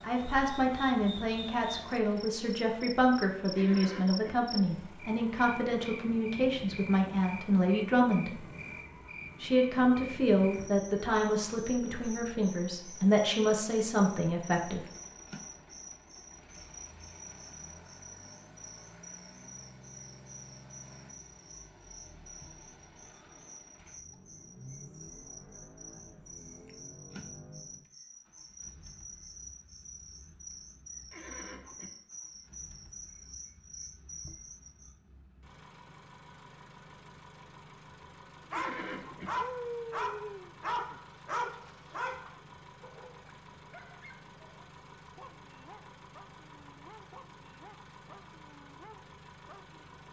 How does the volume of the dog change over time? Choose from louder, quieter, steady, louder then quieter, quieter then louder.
quieter.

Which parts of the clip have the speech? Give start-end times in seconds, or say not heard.
0.0-8.4, 9.4-14.8.